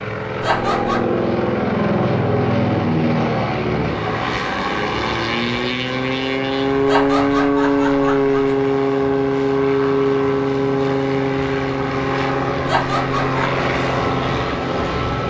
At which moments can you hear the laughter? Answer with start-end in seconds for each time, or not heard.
0.4-1.1, 6.8-8.6, 12.7-13.7.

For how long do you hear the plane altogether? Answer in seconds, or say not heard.
15 s.